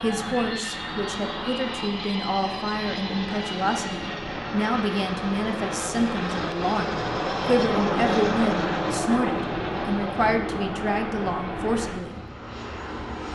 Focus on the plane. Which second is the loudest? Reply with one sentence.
The loudest moment of the plane is at 8 seconds.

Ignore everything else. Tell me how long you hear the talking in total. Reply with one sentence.
The talking can be heard for 12 seconds in total.